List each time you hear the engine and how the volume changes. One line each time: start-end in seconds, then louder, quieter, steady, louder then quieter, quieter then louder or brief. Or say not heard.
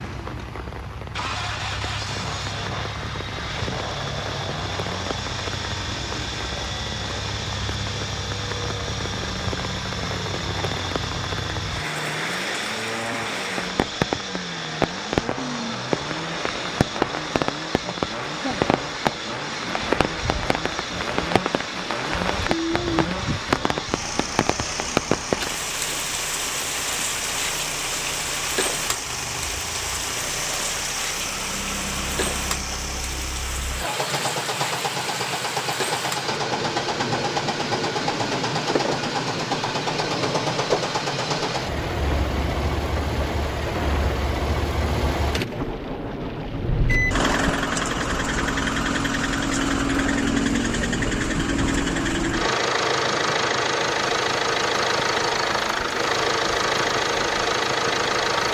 0.0-58.4 louder.